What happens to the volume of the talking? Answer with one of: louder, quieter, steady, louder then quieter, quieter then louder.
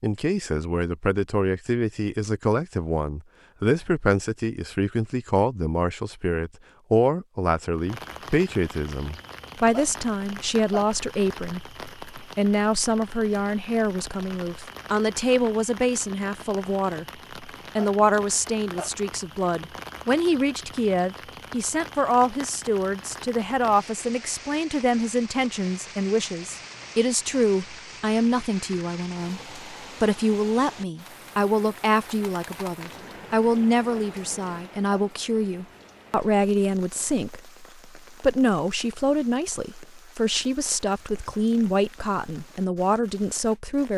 steady.